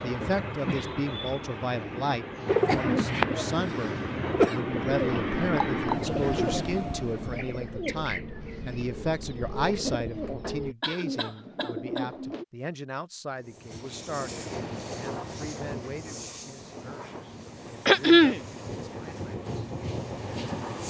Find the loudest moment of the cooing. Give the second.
3 s.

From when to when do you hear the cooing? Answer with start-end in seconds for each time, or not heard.
2.5-12.4.